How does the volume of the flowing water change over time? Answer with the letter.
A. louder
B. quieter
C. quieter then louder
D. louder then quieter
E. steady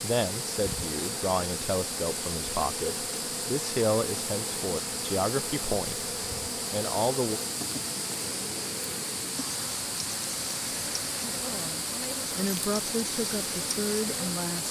E.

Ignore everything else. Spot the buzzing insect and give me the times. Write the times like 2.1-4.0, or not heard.
0.0-14.6.